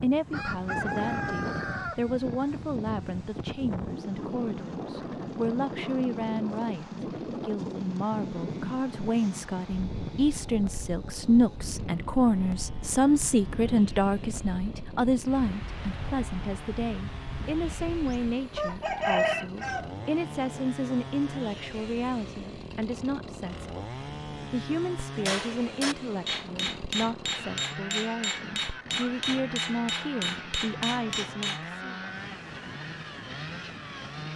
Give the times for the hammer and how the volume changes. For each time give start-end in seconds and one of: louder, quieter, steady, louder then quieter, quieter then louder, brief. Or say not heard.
25.1-31.6 steady.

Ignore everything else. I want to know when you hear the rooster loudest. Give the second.
19 s.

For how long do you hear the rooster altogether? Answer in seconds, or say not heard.
4 s.